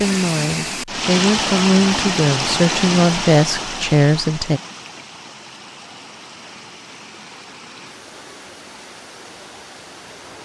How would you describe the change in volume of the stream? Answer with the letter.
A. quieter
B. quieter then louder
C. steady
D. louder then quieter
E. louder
A.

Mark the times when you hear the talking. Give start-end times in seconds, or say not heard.
0.0-4.6.